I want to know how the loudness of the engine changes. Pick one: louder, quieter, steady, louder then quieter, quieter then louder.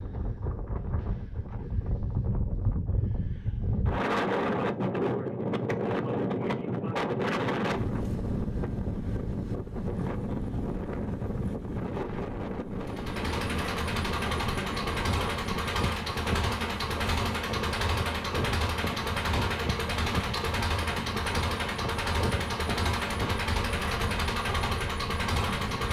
steady.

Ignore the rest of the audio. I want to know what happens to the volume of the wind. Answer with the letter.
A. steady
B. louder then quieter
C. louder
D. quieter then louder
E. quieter
E.